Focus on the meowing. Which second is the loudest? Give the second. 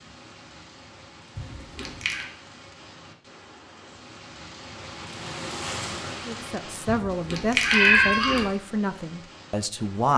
8 s.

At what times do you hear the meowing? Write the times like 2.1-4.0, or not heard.
1.4-2.2, 6.8-8.4.